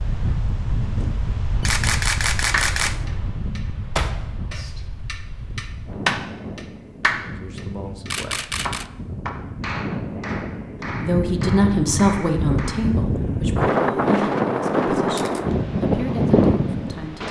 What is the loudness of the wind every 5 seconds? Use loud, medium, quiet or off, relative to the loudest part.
medium, quiet, loud, loud.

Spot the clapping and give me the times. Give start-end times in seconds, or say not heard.
2.5-12.9.